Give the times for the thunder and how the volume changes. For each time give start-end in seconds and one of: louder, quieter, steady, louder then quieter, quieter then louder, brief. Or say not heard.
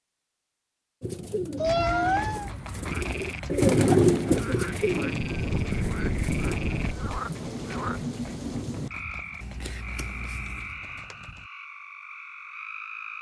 4.8-8.9 steady.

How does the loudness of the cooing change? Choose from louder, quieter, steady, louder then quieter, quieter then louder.
louder then quieter.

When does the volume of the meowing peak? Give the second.
2 s.